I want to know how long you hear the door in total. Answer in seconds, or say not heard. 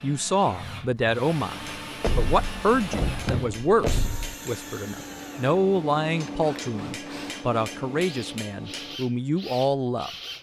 2 s.